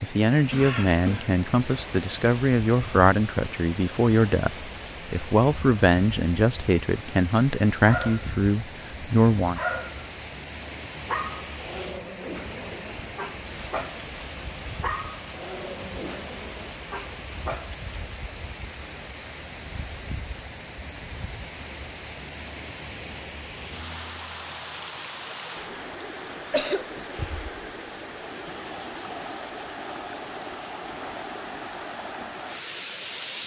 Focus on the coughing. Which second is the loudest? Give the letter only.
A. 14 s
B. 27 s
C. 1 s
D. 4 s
B.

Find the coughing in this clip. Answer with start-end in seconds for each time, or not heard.
0.5-1.4, 26.5-27.1.